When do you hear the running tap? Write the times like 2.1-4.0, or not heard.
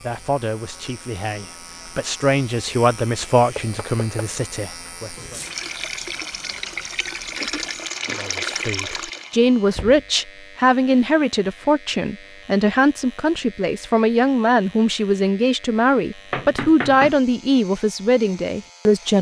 5.0-9.3.